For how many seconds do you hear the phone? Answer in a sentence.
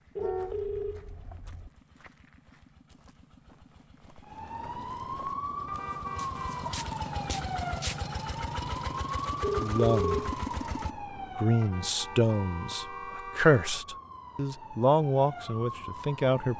The phone can be heard for 2 seconds in total.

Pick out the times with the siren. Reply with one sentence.
You can hear the siren from 4.2 to 16.5 s.